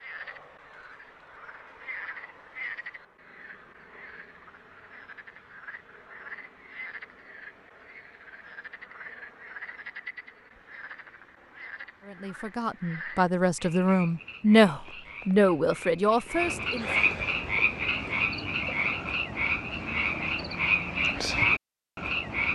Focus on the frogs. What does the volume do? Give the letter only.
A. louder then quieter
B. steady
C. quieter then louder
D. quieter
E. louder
E.